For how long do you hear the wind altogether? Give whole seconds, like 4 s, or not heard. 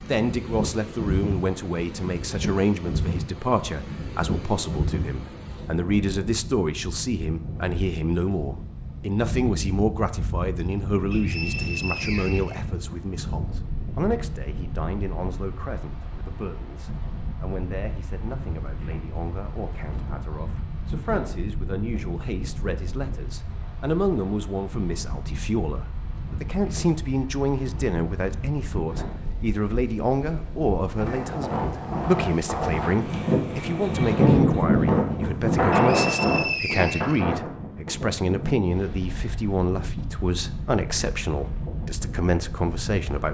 43 s.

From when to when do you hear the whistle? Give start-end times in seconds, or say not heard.
11.1-12.6, 35.7-37.2.